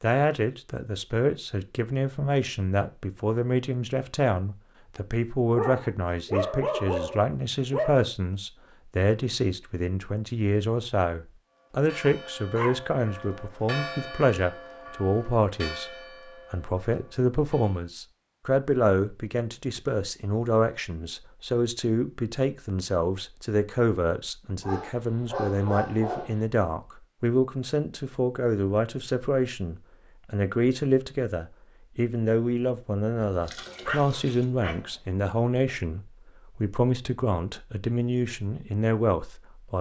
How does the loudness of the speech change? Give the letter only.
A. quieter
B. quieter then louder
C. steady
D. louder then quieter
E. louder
C.